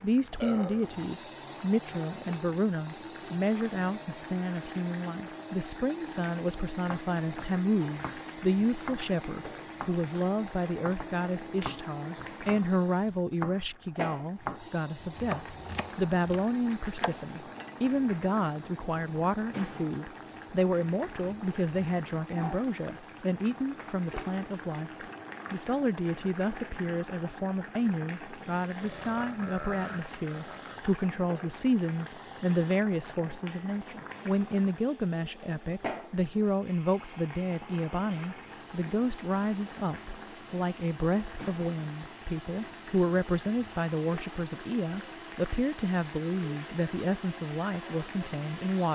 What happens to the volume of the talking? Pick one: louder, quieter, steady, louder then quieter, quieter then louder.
steady.